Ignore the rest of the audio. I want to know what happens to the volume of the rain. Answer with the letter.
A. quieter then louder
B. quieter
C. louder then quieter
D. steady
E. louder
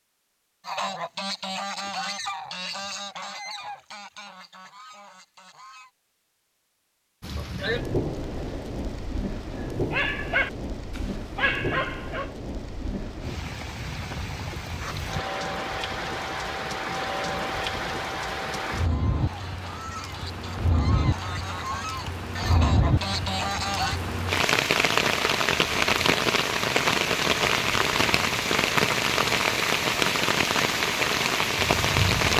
E.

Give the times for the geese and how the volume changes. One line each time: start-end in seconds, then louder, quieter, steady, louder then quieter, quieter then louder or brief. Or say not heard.
0.7-5.9 quieter
18.8-24.0 louder.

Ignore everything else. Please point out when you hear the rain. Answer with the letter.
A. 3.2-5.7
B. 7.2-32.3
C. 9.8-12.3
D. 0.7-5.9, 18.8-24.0
B.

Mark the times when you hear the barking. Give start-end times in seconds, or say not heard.
9.8-12.3.